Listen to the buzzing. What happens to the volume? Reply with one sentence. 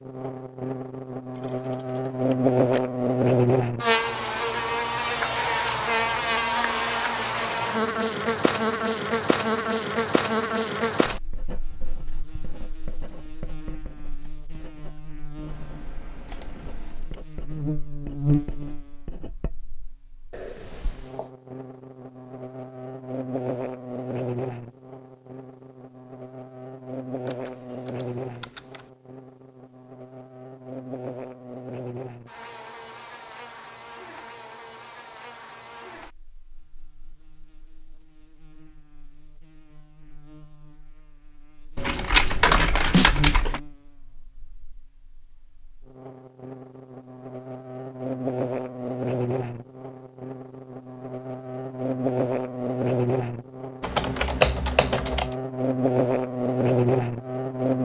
The volume of the buzzing goes down, then up.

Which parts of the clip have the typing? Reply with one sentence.
You can hear the typing from 1.4 to 2.8 s, from 15.4 to 17.1 s, from 27.2 to 28.9 s, from 41.8 to 43.6 s and from 53.8 to 55.4 s.